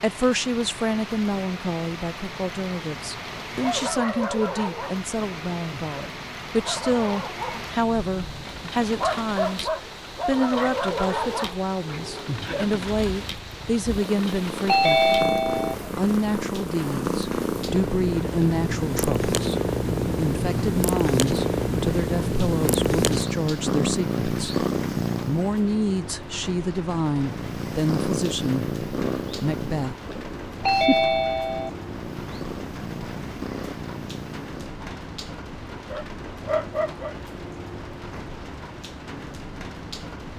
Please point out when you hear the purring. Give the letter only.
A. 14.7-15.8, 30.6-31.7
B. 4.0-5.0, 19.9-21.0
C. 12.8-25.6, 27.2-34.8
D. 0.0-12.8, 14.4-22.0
C.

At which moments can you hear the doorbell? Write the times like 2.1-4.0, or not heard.
14.7-15.8, 30.6-31.7.